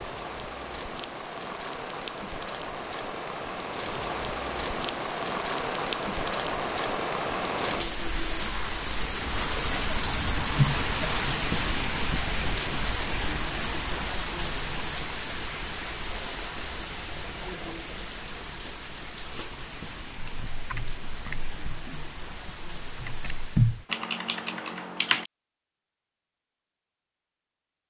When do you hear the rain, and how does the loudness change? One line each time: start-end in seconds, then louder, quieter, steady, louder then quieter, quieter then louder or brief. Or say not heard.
0.0-23.9 louder then quieter.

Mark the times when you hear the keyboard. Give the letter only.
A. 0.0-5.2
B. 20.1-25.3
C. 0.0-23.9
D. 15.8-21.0
B.